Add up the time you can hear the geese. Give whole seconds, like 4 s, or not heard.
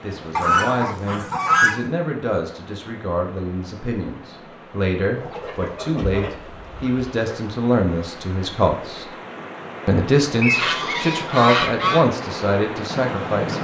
5 s.